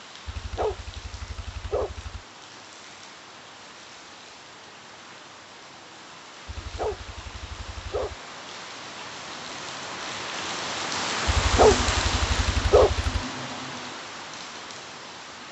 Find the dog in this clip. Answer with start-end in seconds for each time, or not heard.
0.2-2.2, 6.5-8.2, 11.2-13.2.